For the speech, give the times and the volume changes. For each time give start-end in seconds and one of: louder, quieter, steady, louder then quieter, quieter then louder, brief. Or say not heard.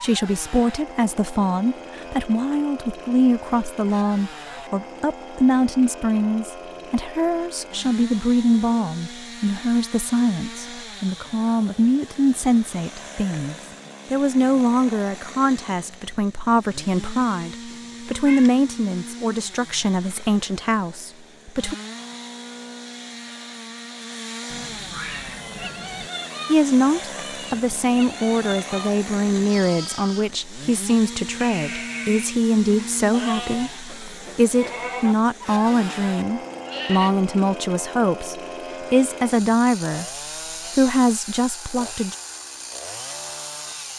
0.0-21.8 steady
26.4-40.0 steady
40.7-42.1 brief.